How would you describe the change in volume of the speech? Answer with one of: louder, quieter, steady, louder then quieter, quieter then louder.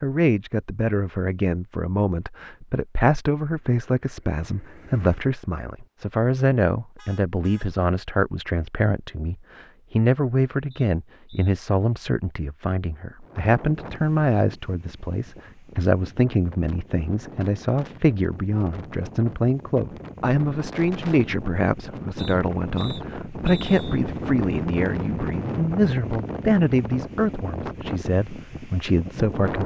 steady.